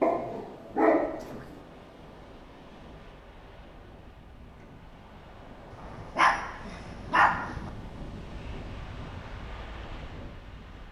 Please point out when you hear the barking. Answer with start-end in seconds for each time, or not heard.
0.0-1.6, 5.7-7.7.